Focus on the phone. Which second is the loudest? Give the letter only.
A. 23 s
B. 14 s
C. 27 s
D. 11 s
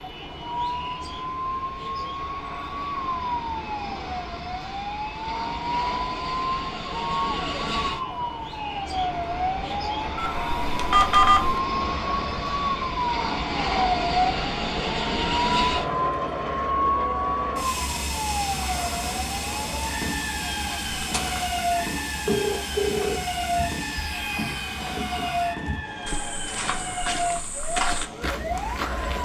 D.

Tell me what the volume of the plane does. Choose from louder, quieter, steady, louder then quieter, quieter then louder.
louder then quieter.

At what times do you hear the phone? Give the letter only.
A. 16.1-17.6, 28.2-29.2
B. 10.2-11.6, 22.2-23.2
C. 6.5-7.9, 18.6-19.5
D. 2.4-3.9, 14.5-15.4
B.